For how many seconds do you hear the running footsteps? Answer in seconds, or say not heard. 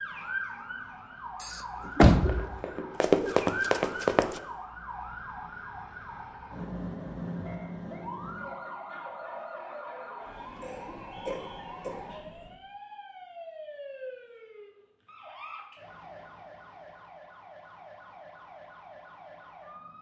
2 s.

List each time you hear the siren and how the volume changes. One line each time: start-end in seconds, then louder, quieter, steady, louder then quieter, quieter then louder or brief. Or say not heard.
0.0-19.9 quieter.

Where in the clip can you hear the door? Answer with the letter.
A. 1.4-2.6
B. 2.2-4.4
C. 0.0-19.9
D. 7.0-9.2
A.